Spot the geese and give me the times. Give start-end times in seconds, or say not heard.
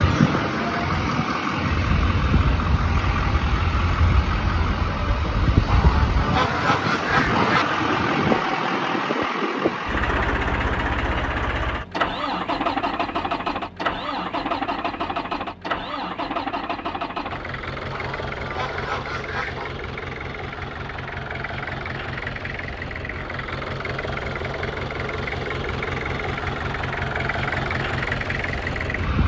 5.7-7.7, 17.9-19.8.